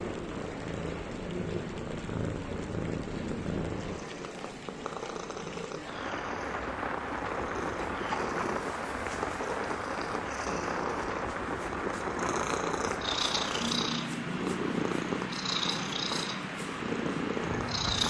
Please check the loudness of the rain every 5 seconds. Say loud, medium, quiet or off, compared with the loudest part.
medium, loud, loud, loud.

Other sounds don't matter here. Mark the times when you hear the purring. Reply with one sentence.
The purring can be heard from 0.0 to 18.0 s.